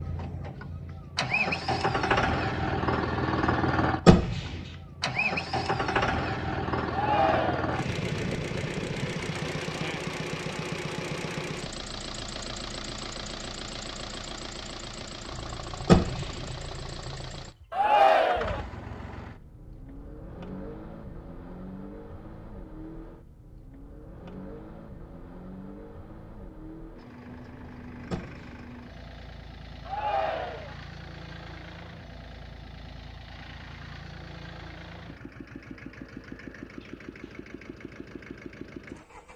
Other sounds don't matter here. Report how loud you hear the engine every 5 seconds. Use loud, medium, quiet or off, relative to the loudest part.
loud, loud, medium, medium, quiet, quiet, quiet, quiet.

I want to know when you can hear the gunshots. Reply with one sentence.
The gunshots can be heard from 4.0 to 4.5 s, from 15.8 to 16.4 s and from 28.1 to 28.6 s.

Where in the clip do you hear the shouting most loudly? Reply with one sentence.
The volume of the shouting peaks at 18 seconds.